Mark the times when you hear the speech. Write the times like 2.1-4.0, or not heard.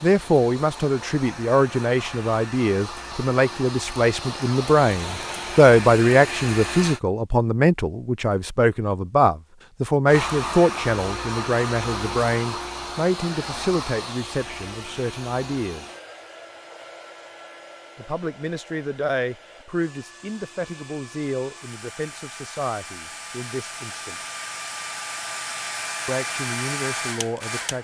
0.0-15.8, 17.9-24.1, 26.1-27.7.